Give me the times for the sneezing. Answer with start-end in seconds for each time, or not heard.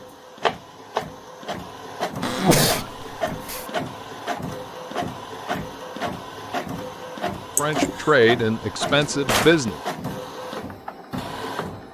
2.2-3.6, 7.5-8.1.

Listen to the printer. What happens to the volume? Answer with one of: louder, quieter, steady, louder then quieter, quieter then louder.
steady.